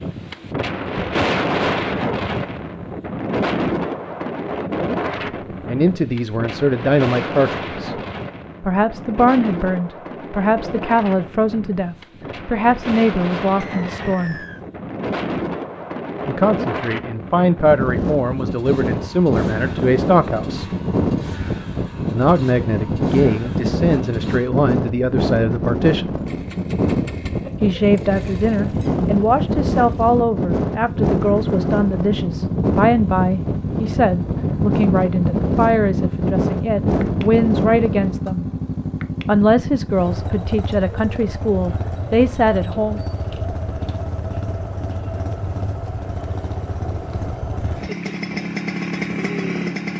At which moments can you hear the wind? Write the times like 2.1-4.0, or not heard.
0.0-38.2.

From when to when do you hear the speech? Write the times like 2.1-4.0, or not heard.
5.7-8.0, 8.6-14.3, 16.2-20.6, 22.1-26.1, 27.6-38.5, 39.2-43.0.